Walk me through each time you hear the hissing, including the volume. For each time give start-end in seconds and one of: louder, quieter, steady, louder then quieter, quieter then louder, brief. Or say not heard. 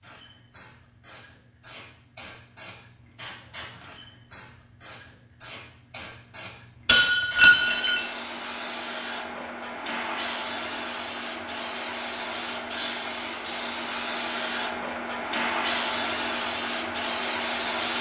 0.0-17.9 louder.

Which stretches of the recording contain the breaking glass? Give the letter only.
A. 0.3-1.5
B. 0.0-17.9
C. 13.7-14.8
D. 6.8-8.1
D.